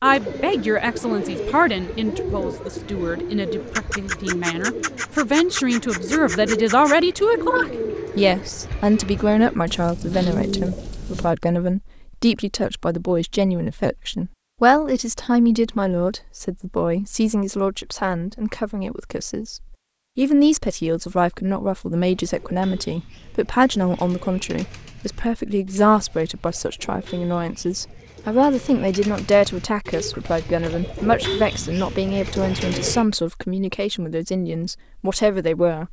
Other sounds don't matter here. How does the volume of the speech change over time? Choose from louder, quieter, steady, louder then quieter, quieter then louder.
steady.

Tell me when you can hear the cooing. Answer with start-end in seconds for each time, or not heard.
0.0-11.3, 22.0-33.0.